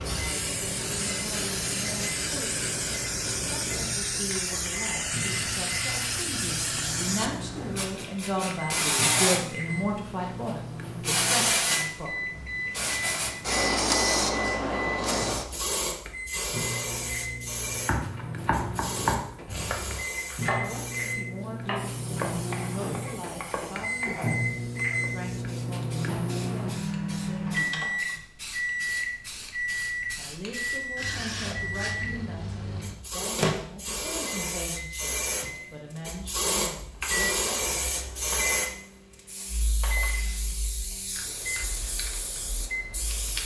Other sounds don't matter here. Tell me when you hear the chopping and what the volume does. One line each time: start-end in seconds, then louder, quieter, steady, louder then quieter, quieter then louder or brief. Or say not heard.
17.8-25.1 quieter.